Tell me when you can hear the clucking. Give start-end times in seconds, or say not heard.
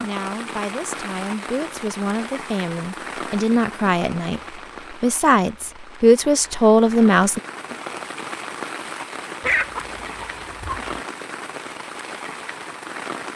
9.4-11.0.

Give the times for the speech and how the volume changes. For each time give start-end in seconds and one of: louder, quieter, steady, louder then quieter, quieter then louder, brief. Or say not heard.
0.0-7.4 louder.